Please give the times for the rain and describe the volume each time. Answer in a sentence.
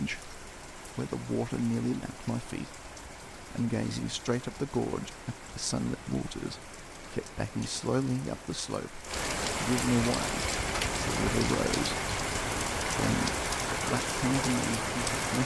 You can hear the rain from 0.0 to 15.4 s, getting louder.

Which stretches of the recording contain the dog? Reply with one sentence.
You can't hear the dog here.